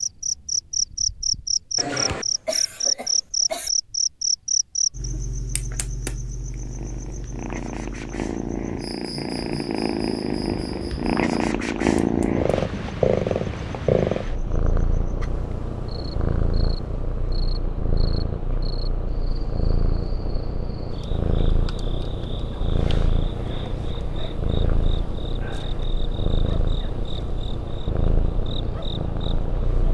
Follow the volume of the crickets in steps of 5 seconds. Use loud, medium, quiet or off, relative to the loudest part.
loud, quiet, quiet, quiet, quiet, quiet.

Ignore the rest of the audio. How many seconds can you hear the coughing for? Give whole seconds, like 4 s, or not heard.
2 s.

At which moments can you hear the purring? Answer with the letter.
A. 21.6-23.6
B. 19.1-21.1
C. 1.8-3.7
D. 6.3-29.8
D.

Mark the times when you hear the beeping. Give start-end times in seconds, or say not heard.
not heard.